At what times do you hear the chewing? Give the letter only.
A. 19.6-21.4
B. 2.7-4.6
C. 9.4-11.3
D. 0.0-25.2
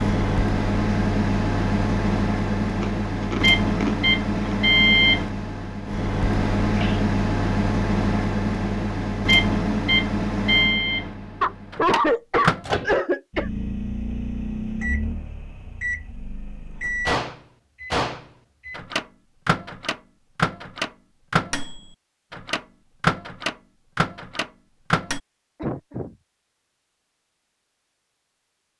B.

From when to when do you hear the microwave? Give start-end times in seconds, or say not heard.
0.0-25.2.